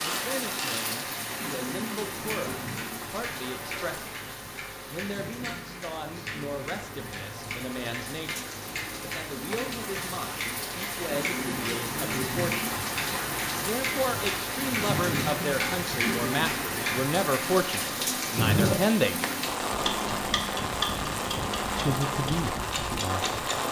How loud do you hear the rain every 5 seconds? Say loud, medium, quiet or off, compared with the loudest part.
medium, medium, loud, loud, loud.